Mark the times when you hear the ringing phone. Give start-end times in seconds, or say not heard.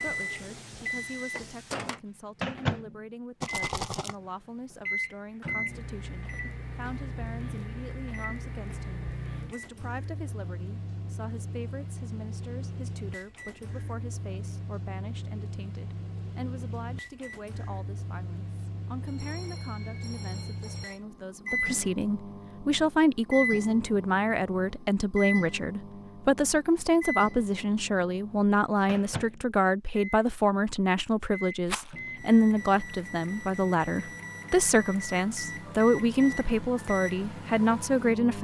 19.1-21.0.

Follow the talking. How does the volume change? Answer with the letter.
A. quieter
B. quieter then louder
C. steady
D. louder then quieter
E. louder
E.